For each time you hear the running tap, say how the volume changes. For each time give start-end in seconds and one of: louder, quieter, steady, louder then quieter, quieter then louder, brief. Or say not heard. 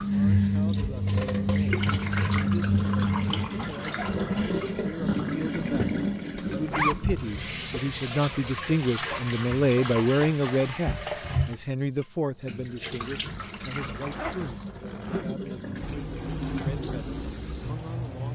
0.0-18.3 quieter.